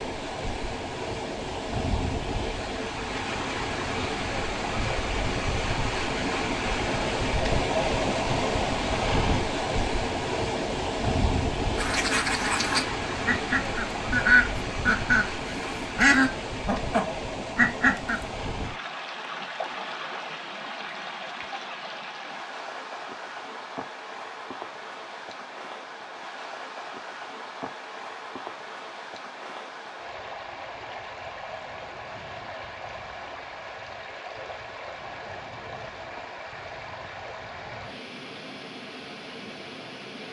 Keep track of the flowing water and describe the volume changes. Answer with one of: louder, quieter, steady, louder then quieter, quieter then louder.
quieter.